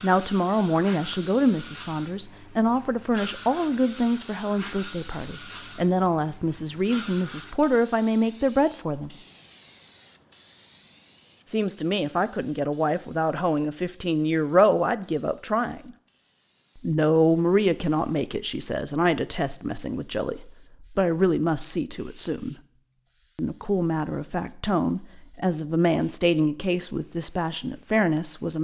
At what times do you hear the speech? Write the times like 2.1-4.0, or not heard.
0.0-9.1, 11.4-15.9, 16.8-22.6, 23.4-28.5.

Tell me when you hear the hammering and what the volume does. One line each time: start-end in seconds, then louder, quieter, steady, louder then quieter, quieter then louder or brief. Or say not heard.
not heard.